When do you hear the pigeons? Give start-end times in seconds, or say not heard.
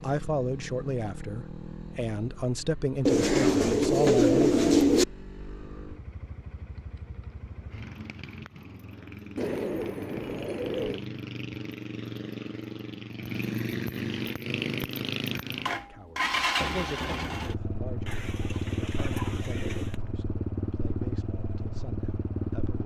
3.0-5.0, 9.3-11.1, 18.1-20.0.